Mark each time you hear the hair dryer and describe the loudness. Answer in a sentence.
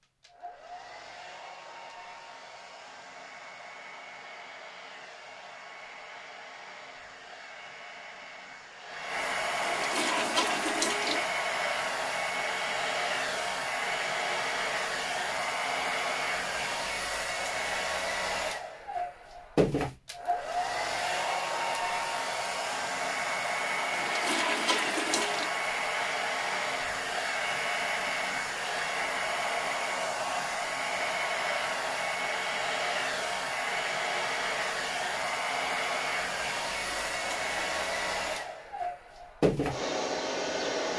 The hair dryer can be heard from 0.0 to 40.9 s, getting louder.